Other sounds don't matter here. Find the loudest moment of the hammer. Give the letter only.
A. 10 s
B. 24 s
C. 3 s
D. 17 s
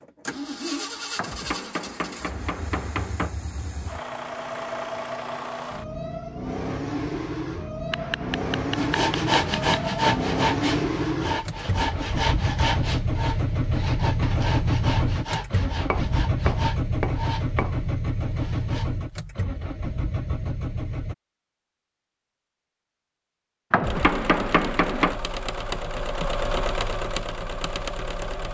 B.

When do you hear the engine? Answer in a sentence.
You can hear the engine from 0.0 to 21.1 s and from 23.8 to 28.5 s.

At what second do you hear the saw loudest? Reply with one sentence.
The volume of the saw peaks at 10 seconds.